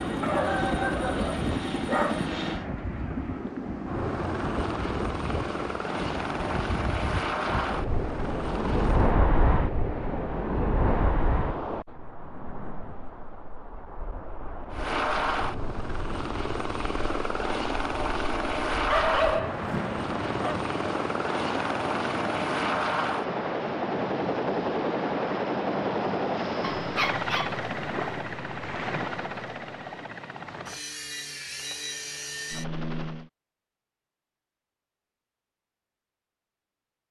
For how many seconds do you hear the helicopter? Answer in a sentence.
You can hear the helicopter for 28 seconds altogether.